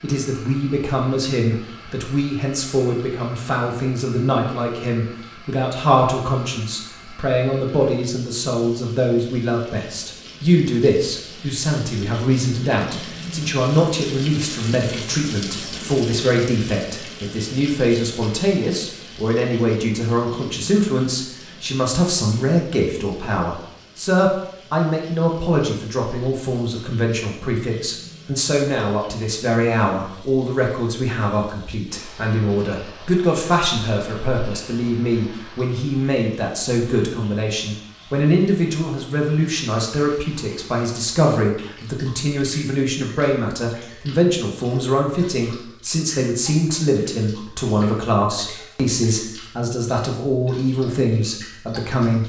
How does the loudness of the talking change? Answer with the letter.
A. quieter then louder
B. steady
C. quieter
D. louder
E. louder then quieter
B.